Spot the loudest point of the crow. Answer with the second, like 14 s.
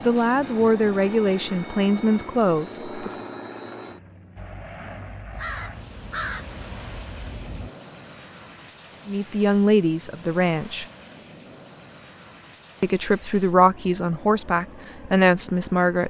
6 s.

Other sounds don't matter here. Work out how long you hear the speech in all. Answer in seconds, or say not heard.
8 s.